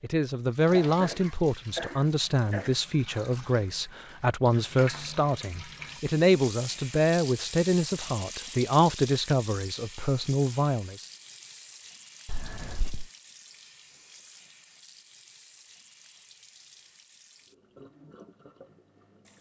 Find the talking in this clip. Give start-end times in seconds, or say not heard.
0.0-11.1.